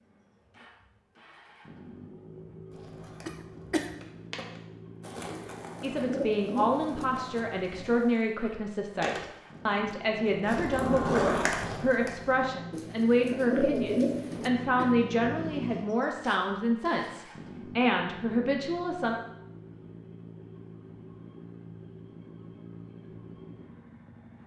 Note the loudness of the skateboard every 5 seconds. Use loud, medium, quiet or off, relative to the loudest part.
quiet, quiet, loud, off, off.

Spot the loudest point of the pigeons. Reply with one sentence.
The volume of the pigeons peaks at 14 seconds.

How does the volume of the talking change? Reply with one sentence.
The volume of the talking stays about the same.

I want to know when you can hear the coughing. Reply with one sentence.
The coughing can be heard from 3.2 to 4.0 s and from 14.3 to 15.1 s.